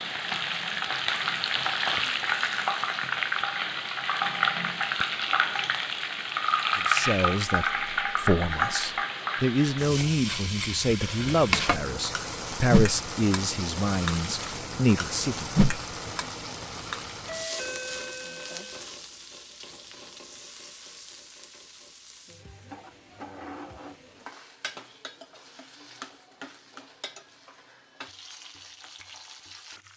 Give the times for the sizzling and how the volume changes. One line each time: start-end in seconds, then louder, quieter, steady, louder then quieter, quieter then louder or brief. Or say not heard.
0.0-29.9 quieter.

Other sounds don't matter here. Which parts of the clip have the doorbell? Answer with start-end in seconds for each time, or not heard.
17.2-18.8.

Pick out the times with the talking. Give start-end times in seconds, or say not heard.
6.8-15.5.